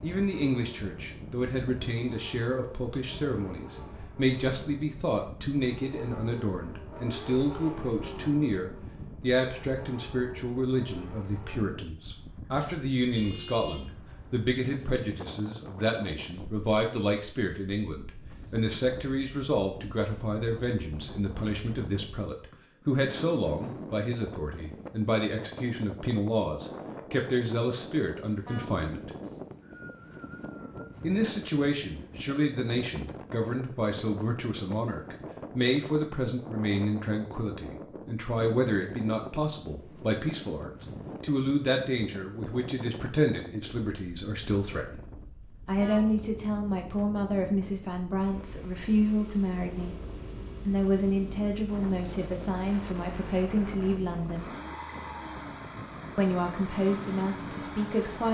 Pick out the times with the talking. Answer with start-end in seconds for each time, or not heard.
0.0-29.1, 31.0-45.0, 45.6-50.0, 50.6-54.5, 56.1-58.2.